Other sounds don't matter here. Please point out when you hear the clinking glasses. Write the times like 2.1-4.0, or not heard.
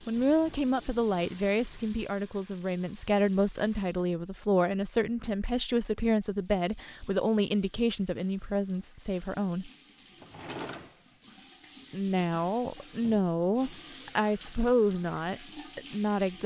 not heard.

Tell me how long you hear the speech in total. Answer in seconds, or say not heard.
14 s.